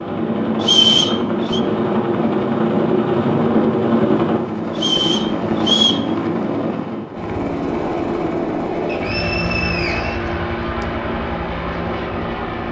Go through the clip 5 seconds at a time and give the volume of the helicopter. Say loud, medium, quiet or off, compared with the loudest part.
loud, loud, medium.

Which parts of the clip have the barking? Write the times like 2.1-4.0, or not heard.
not heard.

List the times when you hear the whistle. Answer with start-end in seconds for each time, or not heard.
0.6-1.6, 4.8-6.0, 8.8-10.8.